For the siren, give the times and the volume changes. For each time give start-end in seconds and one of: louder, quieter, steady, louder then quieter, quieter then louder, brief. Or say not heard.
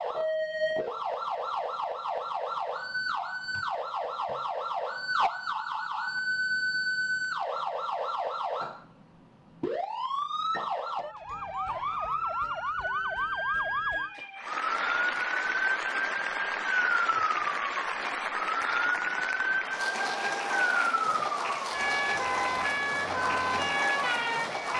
0.0-24.7 steady.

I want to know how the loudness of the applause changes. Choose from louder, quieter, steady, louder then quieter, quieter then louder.
steady.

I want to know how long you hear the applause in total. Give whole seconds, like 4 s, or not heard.
10 s.